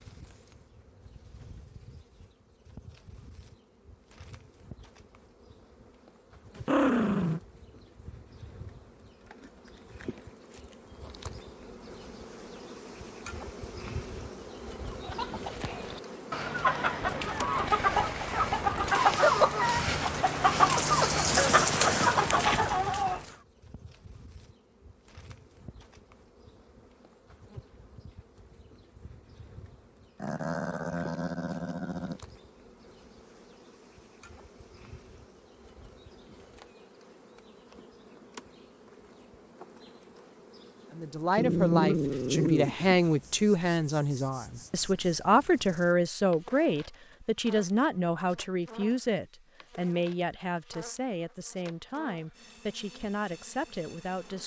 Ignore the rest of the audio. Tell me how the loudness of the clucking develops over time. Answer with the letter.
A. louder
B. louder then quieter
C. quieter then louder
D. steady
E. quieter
A.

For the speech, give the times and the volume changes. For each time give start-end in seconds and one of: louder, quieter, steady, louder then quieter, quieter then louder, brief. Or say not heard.
40.9-54.4 quieter.